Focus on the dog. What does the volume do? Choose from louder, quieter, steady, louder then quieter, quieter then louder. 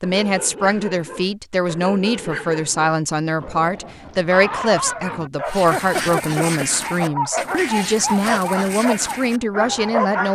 louder.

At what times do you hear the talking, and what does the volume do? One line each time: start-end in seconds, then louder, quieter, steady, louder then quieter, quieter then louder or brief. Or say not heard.
0.0-10.2 steady.